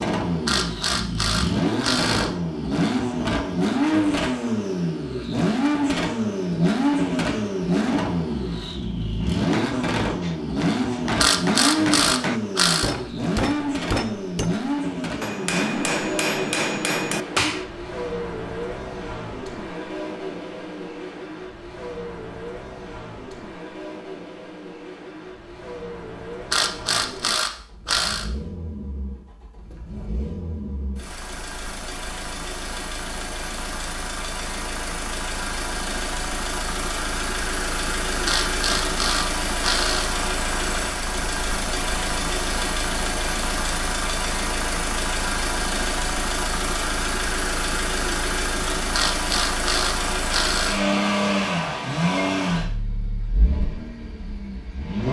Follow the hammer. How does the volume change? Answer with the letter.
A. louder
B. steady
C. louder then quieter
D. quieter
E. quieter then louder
A.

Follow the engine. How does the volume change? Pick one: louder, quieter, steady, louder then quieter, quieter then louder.
quieter then louder.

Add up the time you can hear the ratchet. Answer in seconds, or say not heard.
9 s.